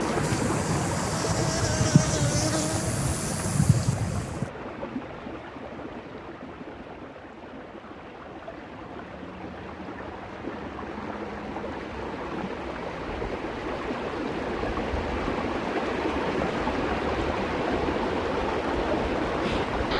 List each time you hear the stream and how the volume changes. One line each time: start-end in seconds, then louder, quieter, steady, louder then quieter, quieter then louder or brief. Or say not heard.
0.0-19.9 quieter then louder.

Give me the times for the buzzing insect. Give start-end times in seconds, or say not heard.
0.0-4.5.